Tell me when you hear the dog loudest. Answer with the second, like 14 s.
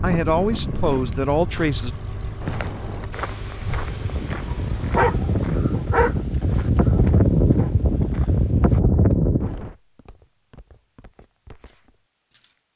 5 s.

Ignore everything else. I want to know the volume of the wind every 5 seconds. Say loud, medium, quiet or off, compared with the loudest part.
medium, loud, off.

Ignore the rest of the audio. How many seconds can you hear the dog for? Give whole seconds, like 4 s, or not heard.
3 s.